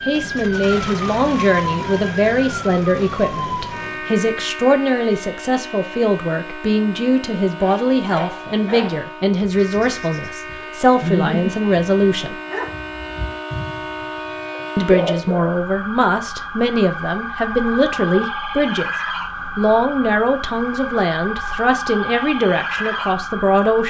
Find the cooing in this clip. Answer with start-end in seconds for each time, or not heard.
not heard.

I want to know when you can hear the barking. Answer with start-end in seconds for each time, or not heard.
7.5-15.5.